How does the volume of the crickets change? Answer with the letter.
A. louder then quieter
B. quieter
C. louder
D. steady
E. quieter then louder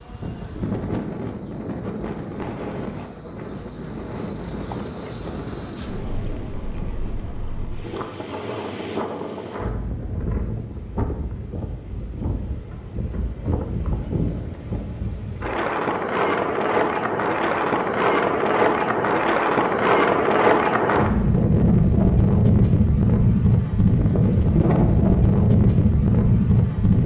A.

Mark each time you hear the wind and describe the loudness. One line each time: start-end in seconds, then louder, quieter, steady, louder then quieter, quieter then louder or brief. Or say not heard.
0.0-27.0 louder.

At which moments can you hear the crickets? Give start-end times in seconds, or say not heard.
0.0-18.1.